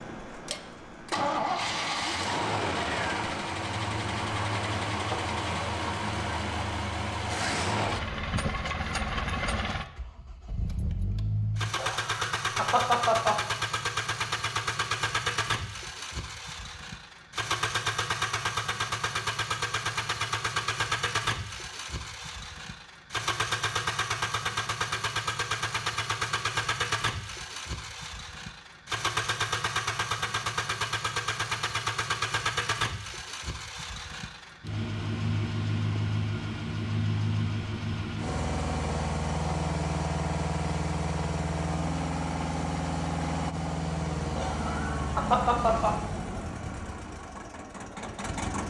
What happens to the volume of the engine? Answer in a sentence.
The loudness of the engine stays about the same.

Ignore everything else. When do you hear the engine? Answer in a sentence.
You can hear the engine from 0.0 to 48.6 s.